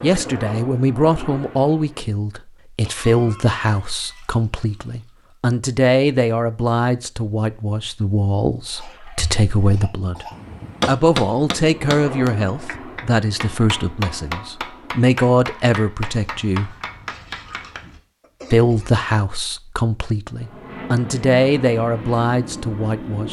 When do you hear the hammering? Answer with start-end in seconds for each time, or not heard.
9.2-17.9.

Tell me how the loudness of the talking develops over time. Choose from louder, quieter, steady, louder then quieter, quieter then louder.
steady.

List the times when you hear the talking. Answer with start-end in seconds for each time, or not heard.
0.0-10.2, 10.8-16.8, 18.5-23.2.